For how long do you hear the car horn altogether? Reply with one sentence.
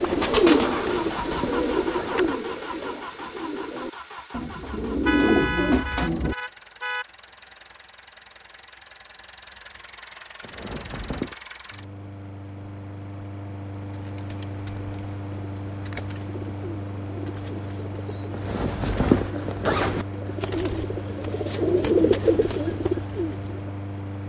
You can hear the car horn for 2 seconds altogether.